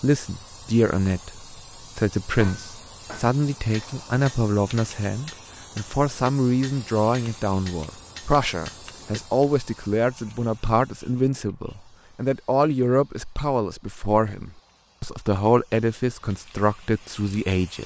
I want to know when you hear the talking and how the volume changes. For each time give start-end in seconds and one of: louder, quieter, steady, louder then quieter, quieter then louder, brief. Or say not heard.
0.0-17.8 steady.